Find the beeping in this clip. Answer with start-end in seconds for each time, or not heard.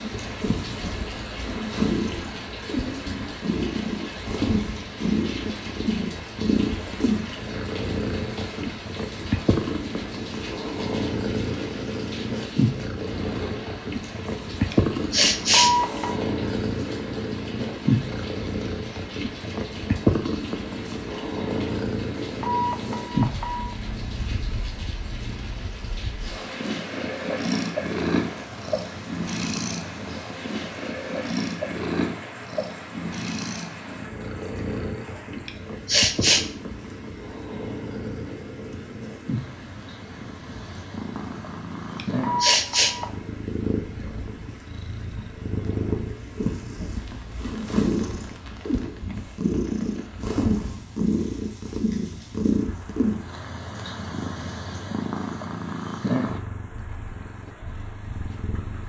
15.5-16.2, 22.4-23.8, 42.2-43.1.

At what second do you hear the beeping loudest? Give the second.
16 s.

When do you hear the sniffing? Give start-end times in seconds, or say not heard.
14.7-15.7, 35.5-36.5, 42.0-43.0.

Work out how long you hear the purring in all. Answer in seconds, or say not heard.
59 s.